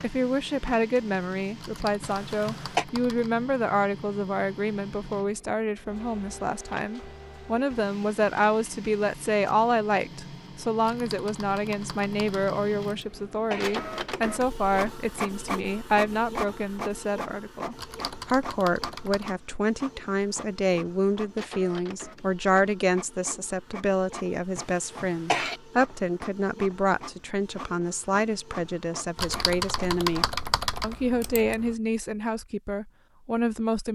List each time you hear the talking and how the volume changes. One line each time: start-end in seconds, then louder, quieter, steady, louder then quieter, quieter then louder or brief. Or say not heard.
0.0-33.8 steady.